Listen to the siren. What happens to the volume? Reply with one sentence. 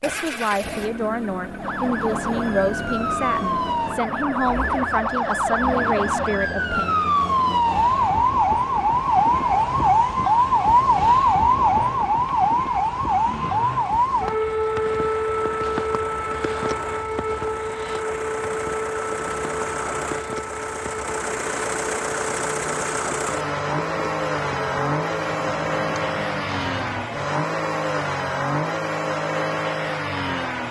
The loudness of the siren goes up, then down.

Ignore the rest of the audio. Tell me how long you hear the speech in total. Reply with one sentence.
The speech can be heard for 7 seconds in total.